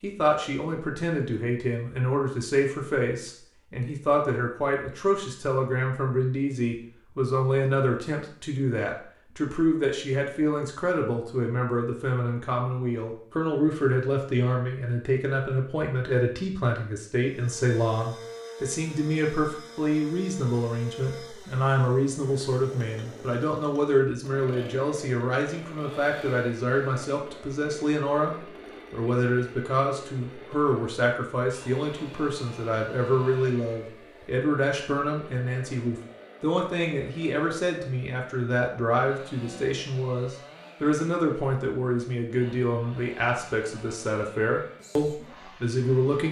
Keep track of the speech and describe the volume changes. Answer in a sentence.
The volume of the speech stays about the same.